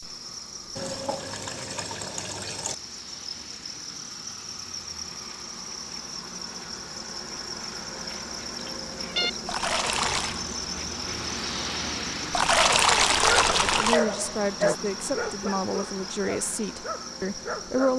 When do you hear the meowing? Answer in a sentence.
You can hear the meowing from 8.6 to 9.3 s.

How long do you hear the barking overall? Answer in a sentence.
You can hear the barking for 5 seconds altogether.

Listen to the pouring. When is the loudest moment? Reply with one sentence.
The volume of the pouring peaks at 13 seconds.